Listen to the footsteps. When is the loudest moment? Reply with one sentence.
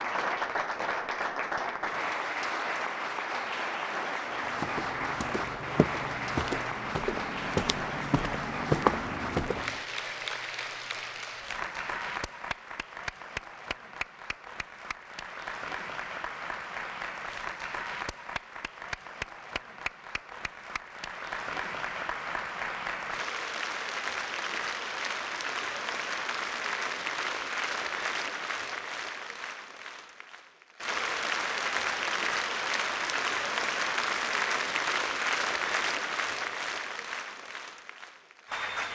The loudest moment of the footsteps is at 9 seconds.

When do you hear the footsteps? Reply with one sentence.
The footsteps can be heard from 4.3 to 9.8 s.